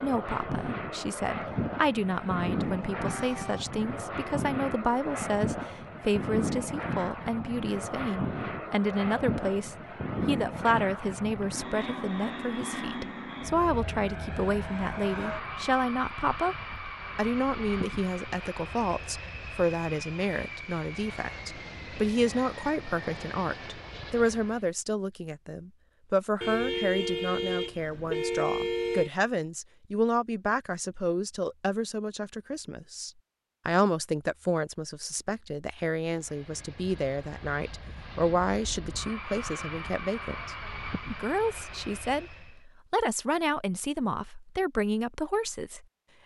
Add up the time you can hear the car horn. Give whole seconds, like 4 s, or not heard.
3 s.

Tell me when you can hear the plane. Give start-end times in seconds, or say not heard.
0.0-24.7, 36.0-42.6.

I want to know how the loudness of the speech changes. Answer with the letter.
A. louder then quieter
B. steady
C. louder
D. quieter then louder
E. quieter
B.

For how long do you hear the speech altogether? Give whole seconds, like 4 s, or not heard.
46 s.